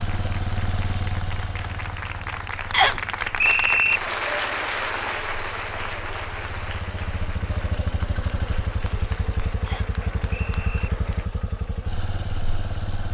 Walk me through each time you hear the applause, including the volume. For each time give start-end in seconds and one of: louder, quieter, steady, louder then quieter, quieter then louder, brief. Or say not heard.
0.0-11.3 louder then quieter.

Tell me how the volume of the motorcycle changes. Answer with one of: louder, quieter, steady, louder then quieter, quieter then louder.
quieter then louder.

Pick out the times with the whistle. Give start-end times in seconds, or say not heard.
2.7-4.0, 9.7-10.9.